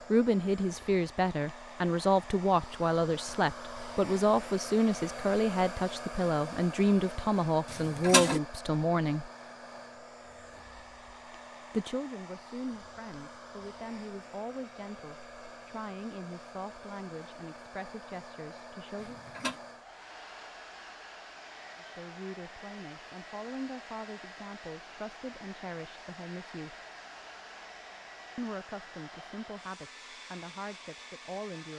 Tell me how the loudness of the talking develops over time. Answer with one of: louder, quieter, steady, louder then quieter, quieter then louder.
quieter.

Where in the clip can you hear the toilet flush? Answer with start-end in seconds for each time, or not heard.
7.7-8.4, 19.0-19.6.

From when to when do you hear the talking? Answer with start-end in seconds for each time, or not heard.
0.1-9.3, 11.7-19.2, 21.8-26.8, 28.4-31.7.